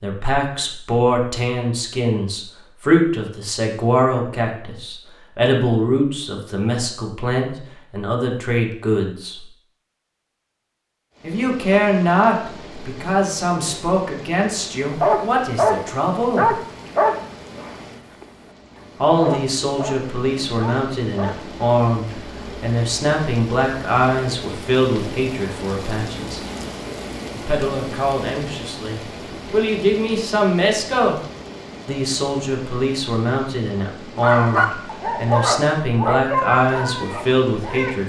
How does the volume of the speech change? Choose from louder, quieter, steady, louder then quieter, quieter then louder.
steady.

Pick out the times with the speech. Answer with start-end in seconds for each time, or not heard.
0.0-9.4, 11.2-16.6, 19.0-26.4, 27.3-31.2, 31.9-38.0.